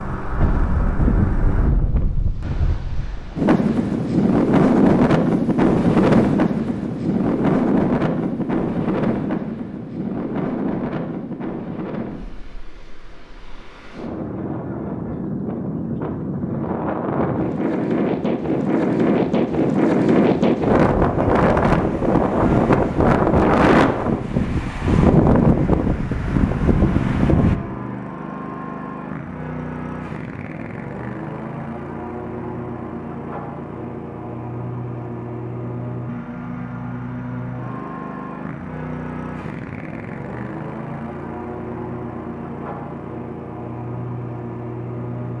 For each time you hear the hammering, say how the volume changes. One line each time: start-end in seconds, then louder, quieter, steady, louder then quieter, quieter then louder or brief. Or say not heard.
not heard.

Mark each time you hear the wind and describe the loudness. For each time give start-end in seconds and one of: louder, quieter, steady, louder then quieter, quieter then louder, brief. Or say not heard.
0.0-27.6 quieter then louder.